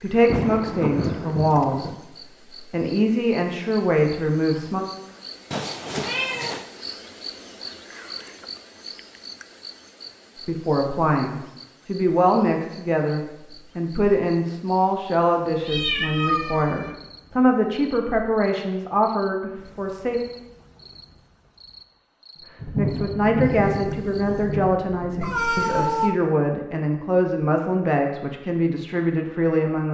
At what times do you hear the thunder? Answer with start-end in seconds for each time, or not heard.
0.2-2.0, 22.6-25.4.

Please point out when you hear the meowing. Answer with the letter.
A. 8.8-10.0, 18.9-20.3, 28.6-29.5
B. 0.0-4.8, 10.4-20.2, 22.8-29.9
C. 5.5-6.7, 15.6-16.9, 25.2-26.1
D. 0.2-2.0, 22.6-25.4
C.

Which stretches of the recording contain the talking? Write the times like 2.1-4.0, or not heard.
0.0-4.8, 10.4-20.2, 22.8-29.9.